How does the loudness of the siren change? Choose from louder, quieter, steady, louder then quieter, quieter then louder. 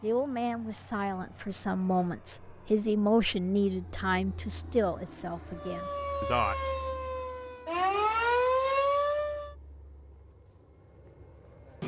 louder.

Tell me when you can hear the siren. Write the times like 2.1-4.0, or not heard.
5.5-9.6.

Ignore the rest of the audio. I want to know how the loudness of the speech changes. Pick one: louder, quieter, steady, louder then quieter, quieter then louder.
louder then quieter.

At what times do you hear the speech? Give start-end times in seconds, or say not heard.
0.0-6.5.